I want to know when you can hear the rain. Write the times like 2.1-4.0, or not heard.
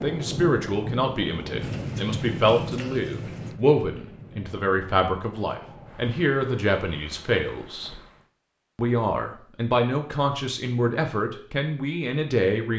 0.0-8.3.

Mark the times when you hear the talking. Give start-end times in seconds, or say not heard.
0.0-8.0, 8.8-12.7.